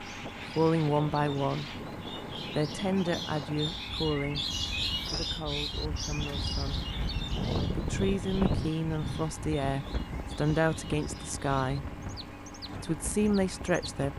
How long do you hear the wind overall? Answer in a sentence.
The wind can be heard for 14 seconds in total.